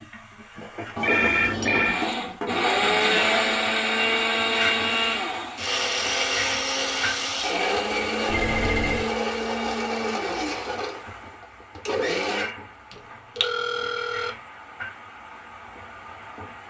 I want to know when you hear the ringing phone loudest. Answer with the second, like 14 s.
1 s.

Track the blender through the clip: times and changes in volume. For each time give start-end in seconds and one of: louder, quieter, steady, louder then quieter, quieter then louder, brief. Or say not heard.
1.9-13.0 quieter.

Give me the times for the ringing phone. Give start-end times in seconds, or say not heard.
0.9-2.0, 8.2-9.1, 13.3-14.3.